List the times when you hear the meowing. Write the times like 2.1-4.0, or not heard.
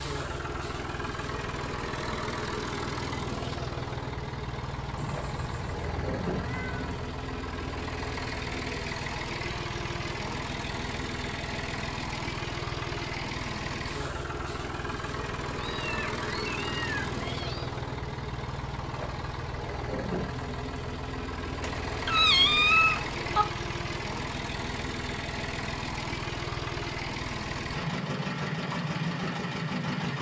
5.0-7.0, 15.6-17.7, 21.6-23.4.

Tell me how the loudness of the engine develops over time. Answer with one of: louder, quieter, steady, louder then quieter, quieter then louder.
steady.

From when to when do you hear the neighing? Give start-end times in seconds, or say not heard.
not heard.